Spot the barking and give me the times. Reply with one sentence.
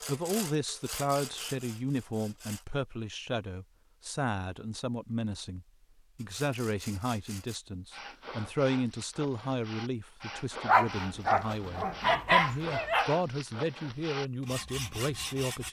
The barking can be heard from 10.7 to 13.1 s.